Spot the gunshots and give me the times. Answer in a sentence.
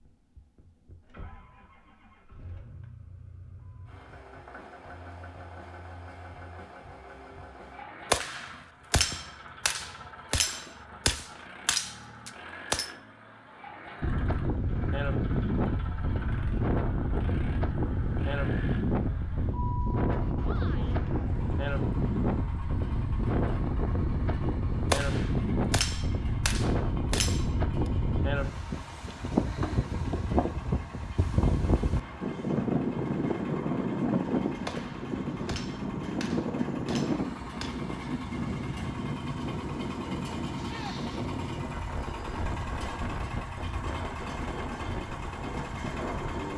You can hear the gunshots from 8.1 to 12.9 s, from 24.9 to 27.4 s and from 34.6 to 37.9 s.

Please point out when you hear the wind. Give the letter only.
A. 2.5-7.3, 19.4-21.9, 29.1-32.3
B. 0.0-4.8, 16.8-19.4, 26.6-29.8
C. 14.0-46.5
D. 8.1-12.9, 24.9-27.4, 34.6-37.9
C.